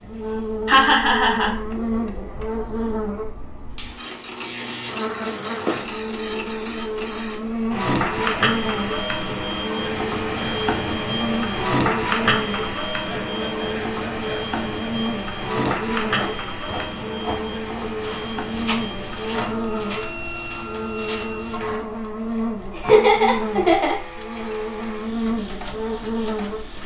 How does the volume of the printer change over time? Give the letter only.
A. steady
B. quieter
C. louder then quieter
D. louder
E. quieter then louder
C.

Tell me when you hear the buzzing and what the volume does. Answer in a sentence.
You can hear the buzzing from 0.0 to 26.8 s, at a steady volume.